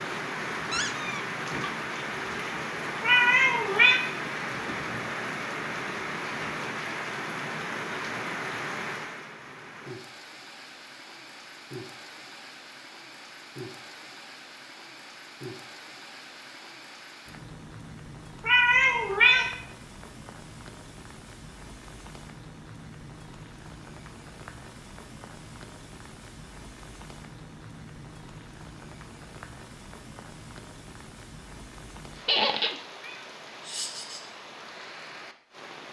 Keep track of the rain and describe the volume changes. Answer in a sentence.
The volume of the rain goes down.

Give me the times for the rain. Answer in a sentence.
You can hear the rain from 0.0 to 35.8 s.